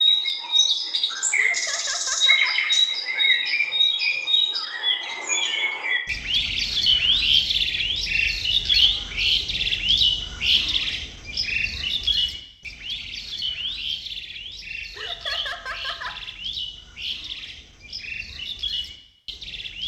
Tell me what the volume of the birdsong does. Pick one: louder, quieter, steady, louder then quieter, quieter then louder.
quieter.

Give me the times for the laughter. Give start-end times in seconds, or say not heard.
1.4-2.6, 14.9-16.1.